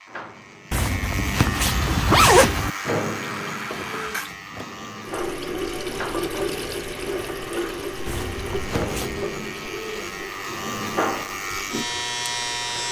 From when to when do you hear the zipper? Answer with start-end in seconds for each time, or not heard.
0.7-2.7, 8.1-9.2.